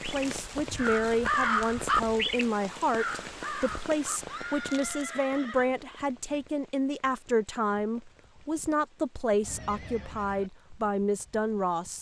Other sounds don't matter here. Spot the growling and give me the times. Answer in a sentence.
You can't hear the growling here.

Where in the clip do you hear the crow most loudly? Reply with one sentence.
The loudest moment of the crow is at 1 second.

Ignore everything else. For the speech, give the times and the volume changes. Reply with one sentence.
You can hear the speech from 0.0 to 11.9 s, at a steady volume.